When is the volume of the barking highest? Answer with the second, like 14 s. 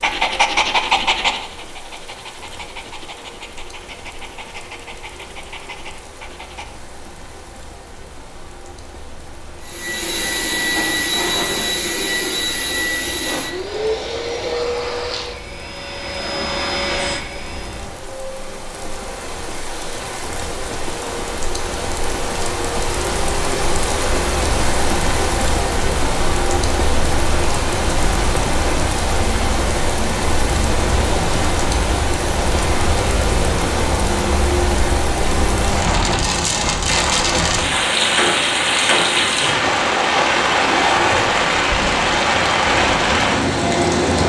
1 s.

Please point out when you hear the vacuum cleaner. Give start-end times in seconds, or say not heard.
9.6-17.9.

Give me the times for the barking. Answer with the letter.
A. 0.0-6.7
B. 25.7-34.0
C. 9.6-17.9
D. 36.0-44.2
A.